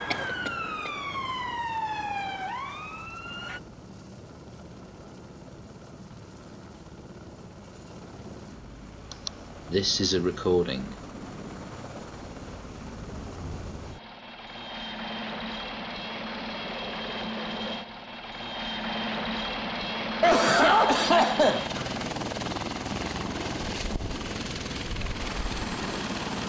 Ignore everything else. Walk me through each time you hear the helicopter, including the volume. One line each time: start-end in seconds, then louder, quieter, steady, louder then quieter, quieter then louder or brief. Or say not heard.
0.0-26.4 louder.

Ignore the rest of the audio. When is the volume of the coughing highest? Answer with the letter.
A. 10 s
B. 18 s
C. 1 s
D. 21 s
D.